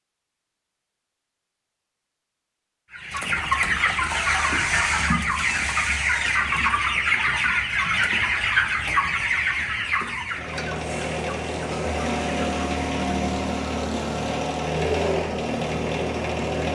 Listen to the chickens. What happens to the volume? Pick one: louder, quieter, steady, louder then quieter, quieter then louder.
quieter.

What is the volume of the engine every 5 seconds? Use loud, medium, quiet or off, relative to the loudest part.
off, off, loud, loud.